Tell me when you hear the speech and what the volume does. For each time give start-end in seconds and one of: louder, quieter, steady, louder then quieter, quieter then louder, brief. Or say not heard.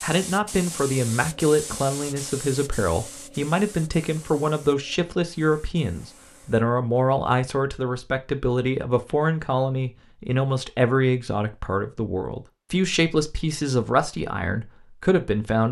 0.0-15.6 steady.